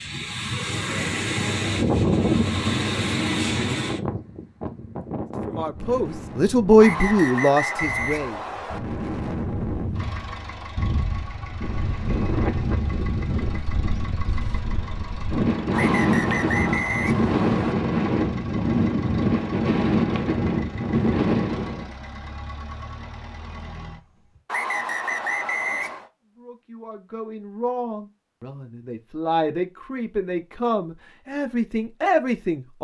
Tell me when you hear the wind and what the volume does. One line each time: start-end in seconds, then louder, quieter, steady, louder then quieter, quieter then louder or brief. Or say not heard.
0.0-21.9 quieter then louder.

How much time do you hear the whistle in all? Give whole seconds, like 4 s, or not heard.
6 s.